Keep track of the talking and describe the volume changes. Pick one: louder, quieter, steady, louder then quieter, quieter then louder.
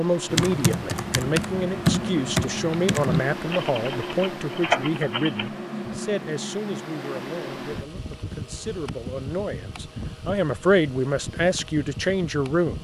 quieter then louder.